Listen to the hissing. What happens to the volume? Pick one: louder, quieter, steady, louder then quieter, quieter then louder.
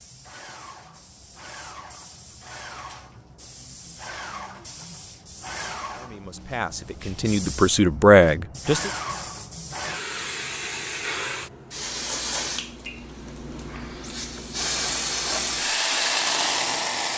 louder.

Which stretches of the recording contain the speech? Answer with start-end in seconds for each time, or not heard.
5.9-8.9.